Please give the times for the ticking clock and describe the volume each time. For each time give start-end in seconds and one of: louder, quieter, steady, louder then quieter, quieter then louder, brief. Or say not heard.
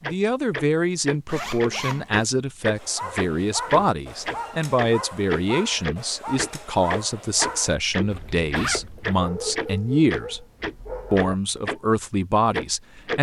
0.0-11.8 steady
12.5-13.1 brief.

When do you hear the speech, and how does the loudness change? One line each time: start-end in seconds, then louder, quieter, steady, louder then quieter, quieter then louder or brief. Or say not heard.
0.0-10.4 steady
11.1-13.1 brief.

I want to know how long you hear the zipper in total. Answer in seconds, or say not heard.
3 s.